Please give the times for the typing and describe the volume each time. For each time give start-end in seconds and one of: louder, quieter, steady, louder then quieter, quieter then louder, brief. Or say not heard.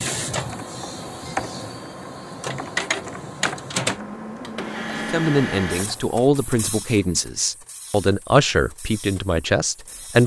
0.0-6.2 quieter.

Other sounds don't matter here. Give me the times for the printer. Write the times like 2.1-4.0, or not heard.
0.0-10.2.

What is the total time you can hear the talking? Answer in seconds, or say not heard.
5 s.